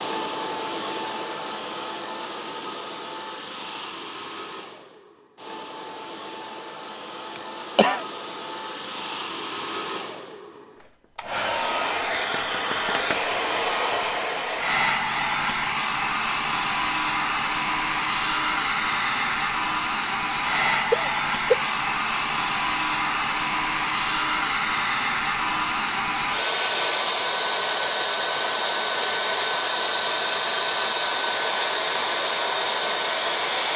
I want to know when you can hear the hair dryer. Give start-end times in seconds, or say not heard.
0.0-33.7.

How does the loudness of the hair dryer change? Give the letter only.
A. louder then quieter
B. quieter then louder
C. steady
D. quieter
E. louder
E.